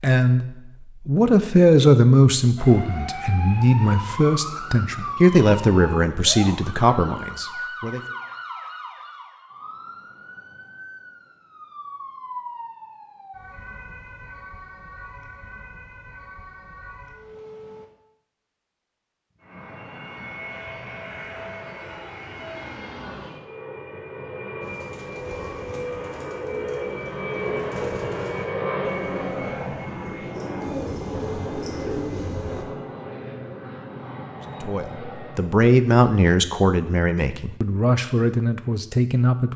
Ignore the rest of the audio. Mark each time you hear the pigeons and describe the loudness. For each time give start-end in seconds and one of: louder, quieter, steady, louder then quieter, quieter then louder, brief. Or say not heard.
24.6-32.6 louder.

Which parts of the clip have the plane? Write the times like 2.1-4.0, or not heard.
19.4-35.6.